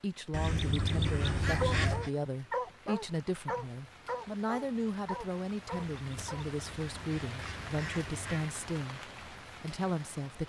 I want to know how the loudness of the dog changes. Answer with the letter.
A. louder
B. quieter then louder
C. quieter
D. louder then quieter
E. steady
C.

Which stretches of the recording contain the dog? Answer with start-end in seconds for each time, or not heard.
1.6-6.5.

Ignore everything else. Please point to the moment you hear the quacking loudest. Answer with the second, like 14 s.
2 s.